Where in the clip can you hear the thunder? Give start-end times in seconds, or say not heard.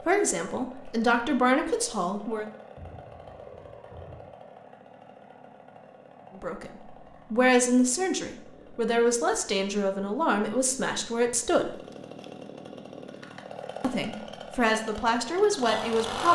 2.8-4.3.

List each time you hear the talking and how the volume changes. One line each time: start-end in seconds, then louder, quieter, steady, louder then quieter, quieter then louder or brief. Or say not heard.
0.1-2.5 brief
6.3-11.8 quieter
13.8-16.3 brief.